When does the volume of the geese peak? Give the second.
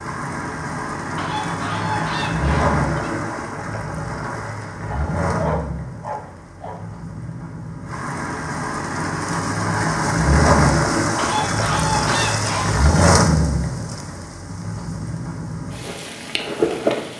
12 s.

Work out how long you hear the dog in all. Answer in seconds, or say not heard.
2 s.